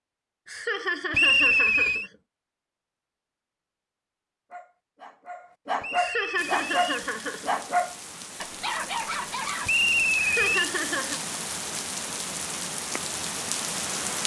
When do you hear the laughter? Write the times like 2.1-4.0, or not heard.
0.5-2.1, 6.0-7.5, 10.2-11.2.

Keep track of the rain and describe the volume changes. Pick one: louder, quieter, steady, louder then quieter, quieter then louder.
louder.